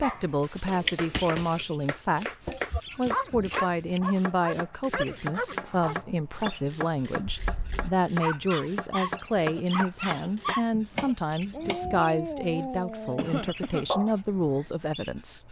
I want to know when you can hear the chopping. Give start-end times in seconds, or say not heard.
0.5-11.8.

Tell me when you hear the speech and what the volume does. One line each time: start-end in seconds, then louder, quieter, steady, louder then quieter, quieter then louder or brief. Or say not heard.
0.0-15.4 steady.